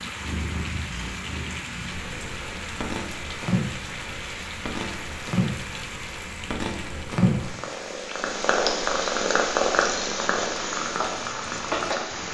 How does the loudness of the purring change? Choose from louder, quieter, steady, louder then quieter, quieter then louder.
louder.